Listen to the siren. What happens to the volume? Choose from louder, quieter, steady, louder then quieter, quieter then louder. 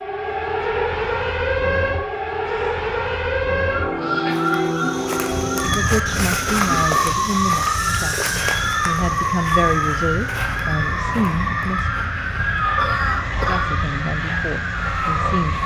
steady.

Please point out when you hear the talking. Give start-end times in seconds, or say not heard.
5.5-12.1, 13.3-15.6.